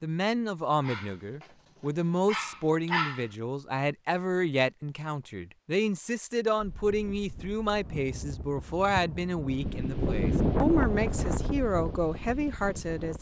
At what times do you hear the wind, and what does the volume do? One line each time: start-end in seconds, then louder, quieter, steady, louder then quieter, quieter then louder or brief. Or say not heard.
6.5-13.1 louder then quieter.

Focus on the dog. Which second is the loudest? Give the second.
3 s.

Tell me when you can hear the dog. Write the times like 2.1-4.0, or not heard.
0.8-1.5, 2.2-3.3.